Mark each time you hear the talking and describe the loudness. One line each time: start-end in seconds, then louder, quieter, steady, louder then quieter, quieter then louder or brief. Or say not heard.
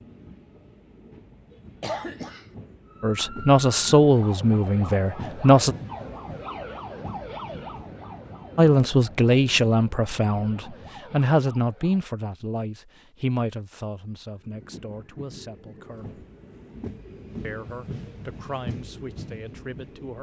3.0-5.8 brief
8.6-16.2 quieter
17.4-20.1 brief.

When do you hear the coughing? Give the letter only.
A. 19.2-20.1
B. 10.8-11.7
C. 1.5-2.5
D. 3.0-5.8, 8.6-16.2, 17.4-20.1
C.